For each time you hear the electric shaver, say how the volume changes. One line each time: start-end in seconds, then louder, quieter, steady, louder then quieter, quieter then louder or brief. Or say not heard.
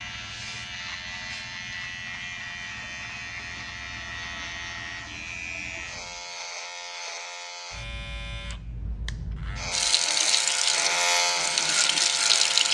0.0-12.6 louder.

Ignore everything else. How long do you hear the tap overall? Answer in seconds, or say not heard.
3 s.